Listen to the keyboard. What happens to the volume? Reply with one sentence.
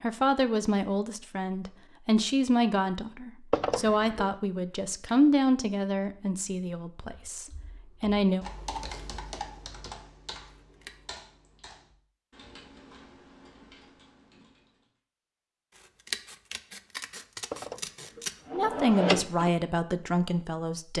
The volume of the keyboard goes down.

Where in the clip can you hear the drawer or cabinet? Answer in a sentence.
You can hear the drawer or cabinet from 3.5 to 4.3 s and from 17.5 to 19.5 s.